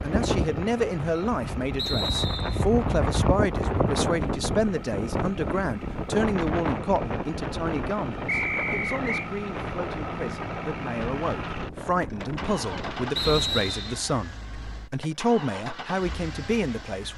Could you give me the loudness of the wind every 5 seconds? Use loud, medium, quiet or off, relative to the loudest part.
loud, loud, medium, off.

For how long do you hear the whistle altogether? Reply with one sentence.
You can hear the whistle for 3 seconds altogether.